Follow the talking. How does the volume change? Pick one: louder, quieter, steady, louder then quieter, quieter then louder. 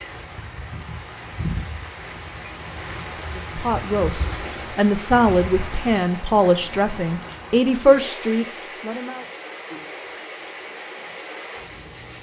louder.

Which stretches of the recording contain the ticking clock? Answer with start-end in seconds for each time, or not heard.
not heard.